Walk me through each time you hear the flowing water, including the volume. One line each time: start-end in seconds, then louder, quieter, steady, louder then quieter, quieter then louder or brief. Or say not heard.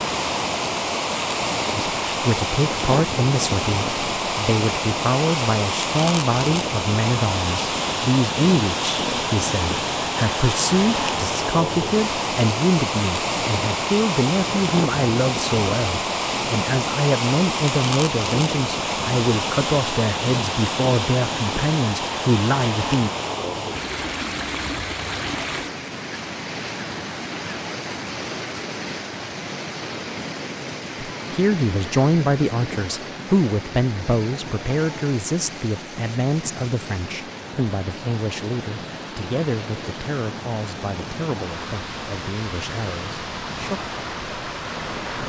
0.0-45.2 quieter.